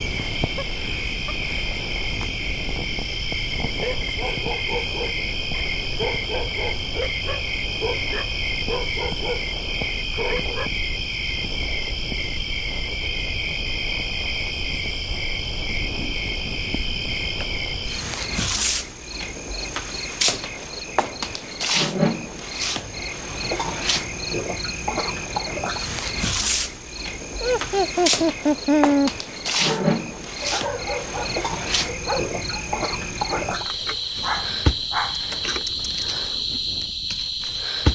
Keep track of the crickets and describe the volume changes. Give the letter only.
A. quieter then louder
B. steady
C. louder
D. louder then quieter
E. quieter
B.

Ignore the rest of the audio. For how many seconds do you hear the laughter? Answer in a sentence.
The laughter can be heard for 3 seconds in total.